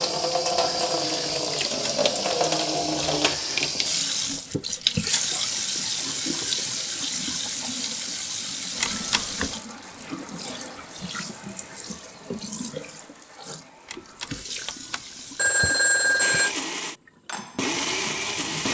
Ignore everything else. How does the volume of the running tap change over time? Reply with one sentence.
The volume of the running tap goes down.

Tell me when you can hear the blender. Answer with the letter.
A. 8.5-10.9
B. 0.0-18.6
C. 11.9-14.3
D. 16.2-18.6
D.